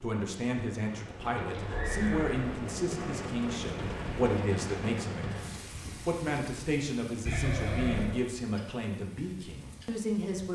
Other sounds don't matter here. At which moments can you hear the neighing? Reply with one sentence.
You can hear the neighing from 1.2 to 3.1 s and from 7.2 to 8.2 s.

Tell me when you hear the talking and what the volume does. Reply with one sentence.
The talking can be heard from 0.0 to 10.4 s, at a steady volume.